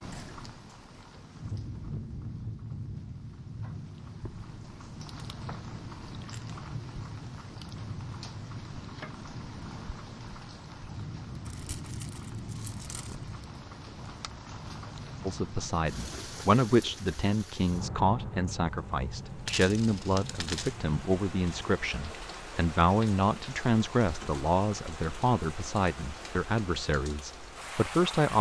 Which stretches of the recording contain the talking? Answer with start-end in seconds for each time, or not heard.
15.2-28.3.